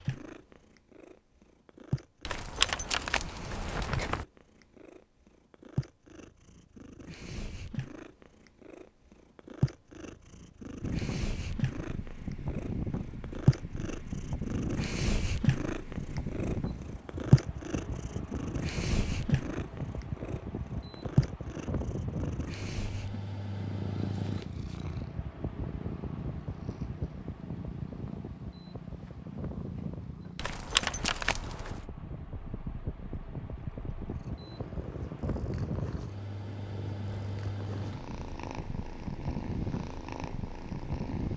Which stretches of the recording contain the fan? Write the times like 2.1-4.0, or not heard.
10.8-41.3.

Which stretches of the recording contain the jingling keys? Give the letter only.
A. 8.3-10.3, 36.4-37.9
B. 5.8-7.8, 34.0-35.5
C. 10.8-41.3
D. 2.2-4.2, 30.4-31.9
D.